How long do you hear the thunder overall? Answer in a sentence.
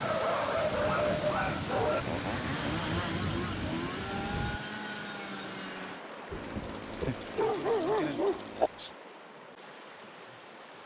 You can hear the thunder for 4 seconds altogether.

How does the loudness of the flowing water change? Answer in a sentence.
The loudness of the flowing water goes down.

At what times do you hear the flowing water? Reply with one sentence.
You can hear the flowing water from 0.0 to 10.8 s.